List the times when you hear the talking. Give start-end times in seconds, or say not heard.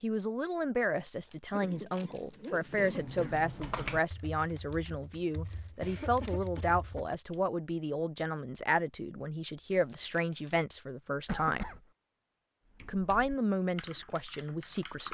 0.0-11.7, 12.8-15.0.